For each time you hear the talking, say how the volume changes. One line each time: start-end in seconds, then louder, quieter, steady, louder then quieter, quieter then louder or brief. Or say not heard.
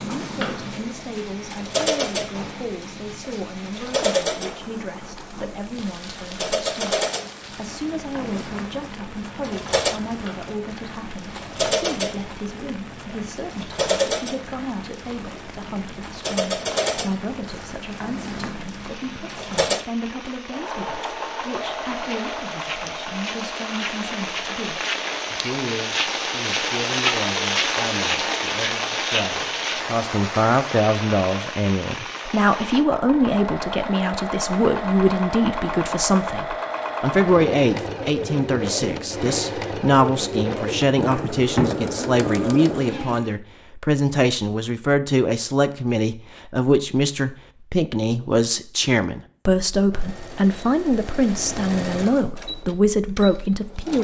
0.1-53.9 louder.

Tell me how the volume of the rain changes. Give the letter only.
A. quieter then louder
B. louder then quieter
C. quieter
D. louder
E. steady
D.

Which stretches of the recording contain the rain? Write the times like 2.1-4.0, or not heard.
0.0-32.9.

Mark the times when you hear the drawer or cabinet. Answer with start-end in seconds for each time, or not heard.
41.0-42.5.